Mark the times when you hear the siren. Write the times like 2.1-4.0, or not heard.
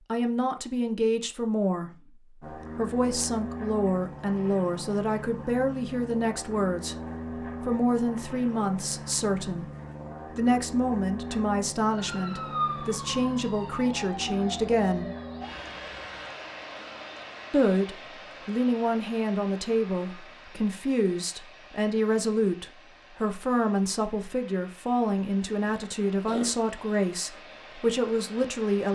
11.9-16.3.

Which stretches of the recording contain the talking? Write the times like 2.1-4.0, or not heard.
0.1-7.0, 7.6-9.7, 10.3-15.1, 17.5-28.8.